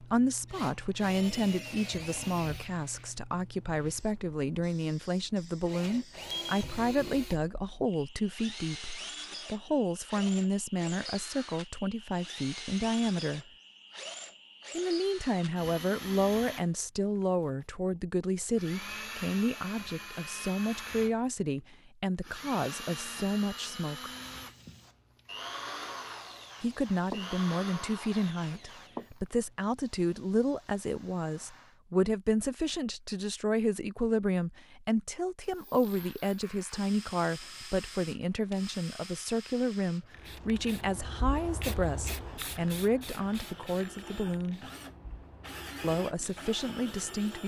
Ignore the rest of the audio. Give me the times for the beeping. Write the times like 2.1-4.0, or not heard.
5.8-6.6.